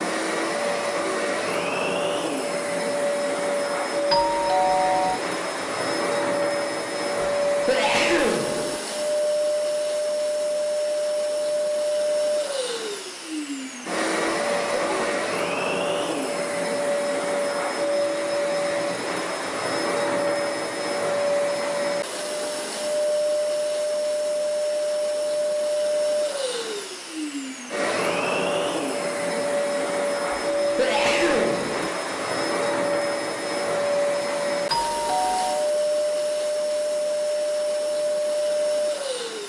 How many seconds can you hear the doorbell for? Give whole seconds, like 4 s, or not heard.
2 s.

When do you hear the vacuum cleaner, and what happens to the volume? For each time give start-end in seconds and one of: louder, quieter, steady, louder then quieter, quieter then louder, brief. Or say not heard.
0.0-39.4 steady.